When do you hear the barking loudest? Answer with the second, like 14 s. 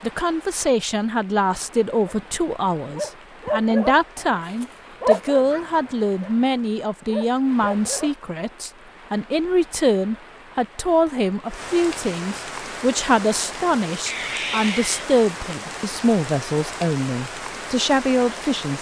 5 s.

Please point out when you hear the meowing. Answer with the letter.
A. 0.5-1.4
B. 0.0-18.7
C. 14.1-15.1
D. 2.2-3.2
C.